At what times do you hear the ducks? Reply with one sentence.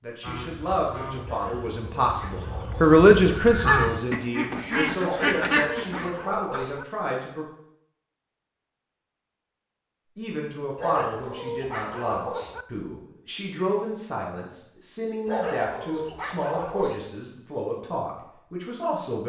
The ducks can be heard from 0.2 to 6.7 s.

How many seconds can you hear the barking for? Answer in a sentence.
You can hear the barking for 7 seconds altogether.